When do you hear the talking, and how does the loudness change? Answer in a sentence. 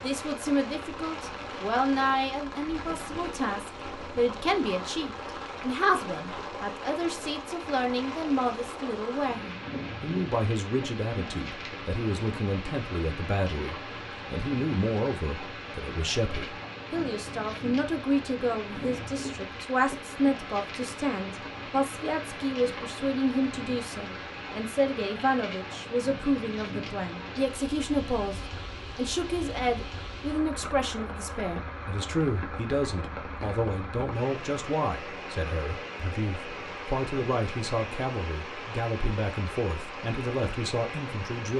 You can hear the talking from 0.0 to 41.5 s, at a steady volume.